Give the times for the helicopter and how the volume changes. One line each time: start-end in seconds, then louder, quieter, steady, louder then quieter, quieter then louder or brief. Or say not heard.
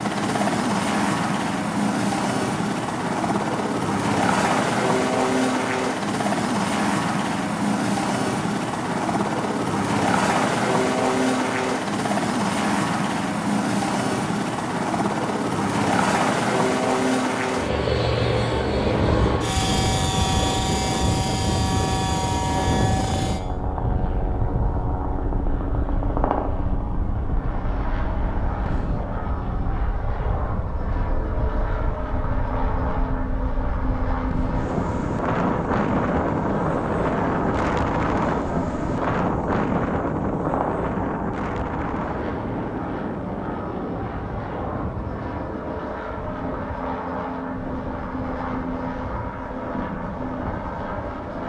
0.0-51.4 quieter.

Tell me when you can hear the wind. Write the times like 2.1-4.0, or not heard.
18.8-51.3.